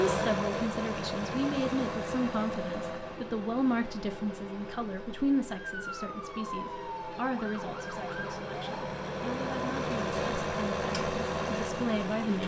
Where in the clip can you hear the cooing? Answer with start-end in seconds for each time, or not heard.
not heard.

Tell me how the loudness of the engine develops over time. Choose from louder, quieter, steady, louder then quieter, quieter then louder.
quieter then louder.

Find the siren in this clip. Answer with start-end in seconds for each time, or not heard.
5.5-8.9.